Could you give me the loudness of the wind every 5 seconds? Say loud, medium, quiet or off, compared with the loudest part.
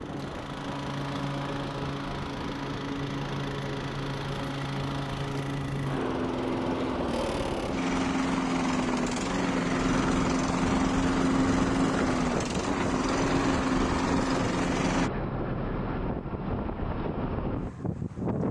medium, medium, loud, loud.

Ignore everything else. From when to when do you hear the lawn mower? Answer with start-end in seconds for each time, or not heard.
0.0-15.1.